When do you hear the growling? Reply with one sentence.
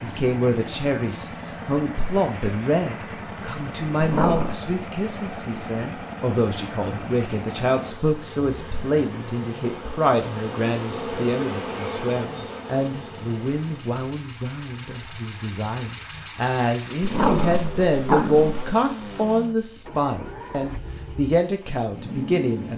The growling can be heard from 4.0 to 4.6 s and from 17.0 to 18.6 s.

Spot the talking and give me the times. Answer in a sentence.
You can hear the talking from 0.0 to 22.7 s.